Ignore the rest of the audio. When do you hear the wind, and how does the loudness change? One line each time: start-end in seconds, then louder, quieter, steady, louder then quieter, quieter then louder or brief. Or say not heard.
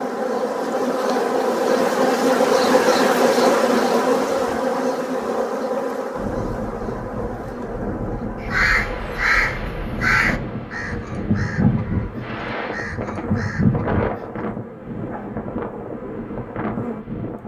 6.1-17.4 steady.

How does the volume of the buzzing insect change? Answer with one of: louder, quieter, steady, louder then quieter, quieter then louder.
quieter.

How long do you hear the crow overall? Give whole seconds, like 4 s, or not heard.
6 s.